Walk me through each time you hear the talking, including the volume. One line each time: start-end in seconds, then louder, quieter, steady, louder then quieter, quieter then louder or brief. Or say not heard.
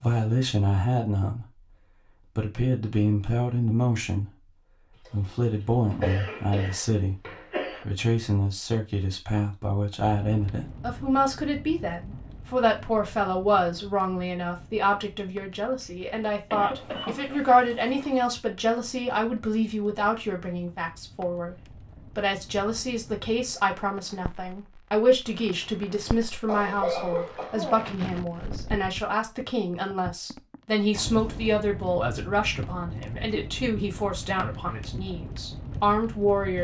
0.0-1.6 brief
2.4-4.3 brief
5.0-7.2 brief
7.8-36.5 steady.